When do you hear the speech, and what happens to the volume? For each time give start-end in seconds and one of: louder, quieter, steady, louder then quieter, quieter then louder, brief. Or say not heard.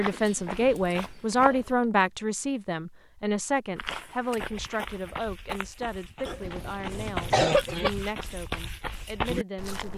0.0-9.9 quieter.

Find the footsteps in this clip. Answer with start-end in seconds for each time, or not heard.
0.0-1.7, 3.8-9.9.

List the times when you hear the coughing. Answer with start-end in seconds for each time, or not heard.
0.1-1.9, 6.2-7.9.